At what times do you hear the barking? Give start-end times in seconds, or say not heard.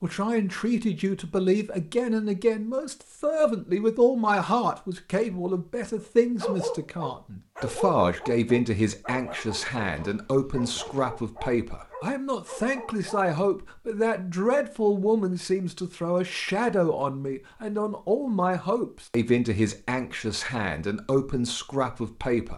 6.0-13.2.